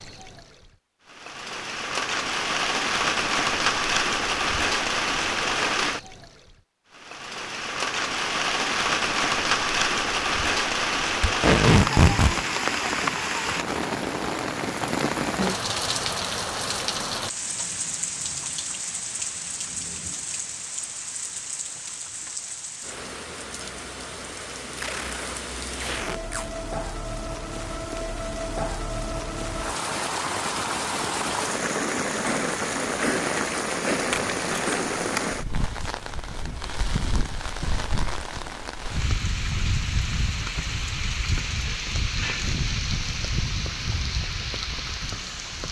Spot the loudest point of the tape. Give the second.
12 s.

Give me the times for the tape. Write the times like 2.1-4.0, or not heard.
11.2-12.3, 24.8-26.5, 34.1-35.3.